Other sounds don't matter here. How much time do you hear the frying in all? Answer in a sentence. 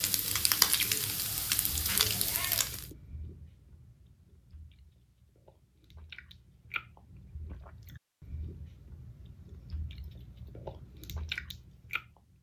You can hear the frying for 3 seconds altogether.